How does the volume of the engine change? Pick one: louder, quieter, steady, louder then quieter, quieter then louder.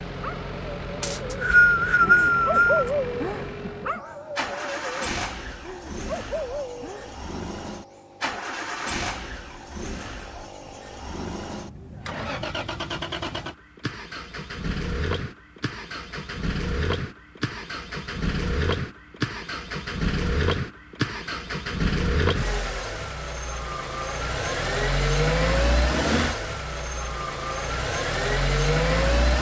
louder.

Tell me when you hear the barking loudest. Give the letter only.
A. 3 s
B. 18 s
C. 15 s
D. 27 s
A.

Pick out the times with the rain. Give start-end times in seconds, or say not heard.
not heard.